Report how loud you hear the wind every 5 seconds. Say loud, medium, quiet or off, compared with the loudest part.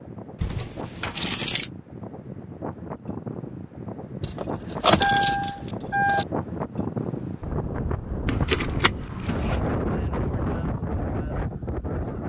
medium, loud, loud.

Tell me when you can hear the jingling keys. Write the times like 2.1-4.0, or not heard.
0.4-1.7, 4.2-6.2, 8.2-9.6.